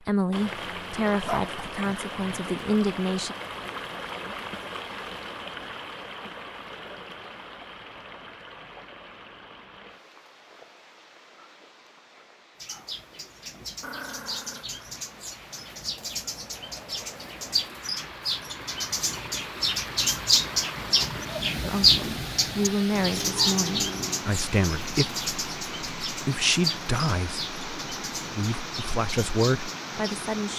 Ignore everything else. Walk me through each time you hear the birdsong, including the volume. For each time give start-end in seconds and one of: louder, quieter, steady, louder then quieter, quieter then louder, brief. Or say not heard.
12.6-30.3 louder then quieter.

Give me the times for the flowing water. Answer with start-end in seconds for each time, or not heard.
0.0-30.5.